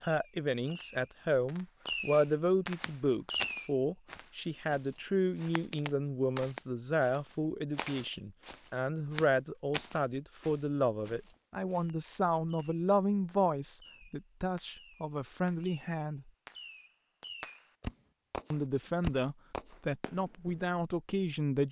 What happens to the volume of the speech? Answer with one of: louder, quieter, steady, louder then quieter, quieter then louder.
steady.